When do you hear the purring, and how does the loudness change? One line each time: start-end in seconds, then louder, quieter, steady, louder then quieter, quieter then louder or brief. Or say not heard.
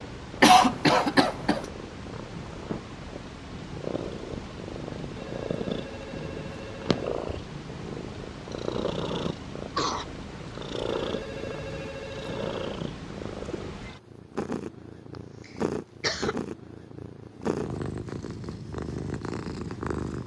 0.0-20.2 steady.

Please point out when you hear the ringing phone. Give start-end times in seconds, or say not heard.
5.2-6.9, 10.9-12.8.